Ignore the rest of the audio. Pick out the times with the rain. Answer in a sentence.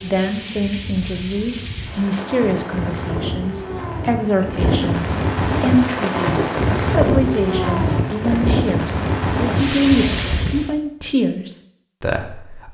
The rain can be heard from 0.0 to 10.8 s.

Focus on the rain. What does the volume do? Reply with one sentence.
The volume of the rain goes up.